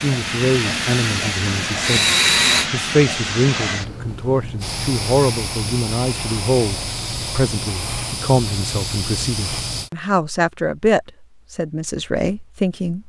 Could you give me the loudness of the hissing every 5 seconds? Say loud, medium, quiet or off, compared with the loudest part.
loud, loud, off.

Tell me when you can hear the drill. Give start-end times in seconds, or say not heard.
0.1-2.7.